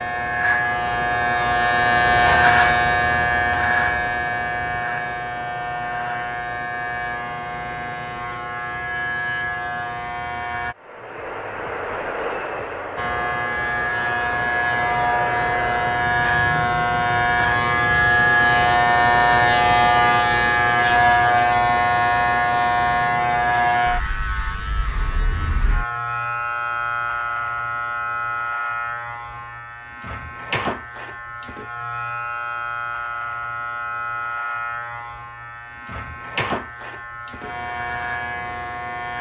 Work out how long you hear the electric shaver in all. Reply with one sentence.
The electric shaver can be heard for 37 seconds in total.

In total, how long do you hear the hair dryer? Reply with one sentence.
The hair dryer can be heard for 5 seconds in total.